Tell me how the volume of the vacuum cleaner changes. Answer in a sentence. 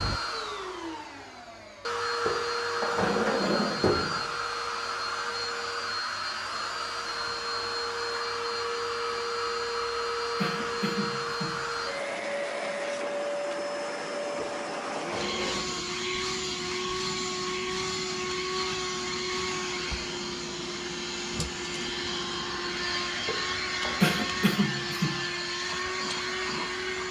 The volume of the vacuum cleaner stays about the same.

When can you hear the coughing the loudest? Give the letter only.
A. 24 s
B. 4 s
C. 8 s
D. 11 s
A.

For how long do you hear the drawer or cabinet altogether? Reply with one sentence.
You can hear the drawer or cabinet for 4 seconds altogether.